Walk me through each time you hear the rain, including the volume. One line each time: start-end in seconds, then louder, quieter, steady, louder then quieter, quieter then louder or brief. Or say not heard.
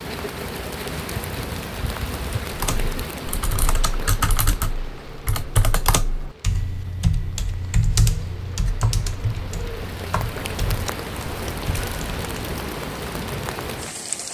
0.0-14.2 quieter then louder.